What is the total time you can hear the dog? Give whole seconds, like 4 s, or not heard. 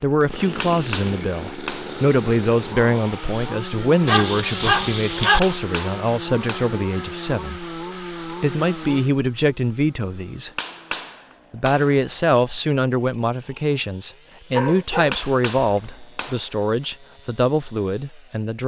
3 s.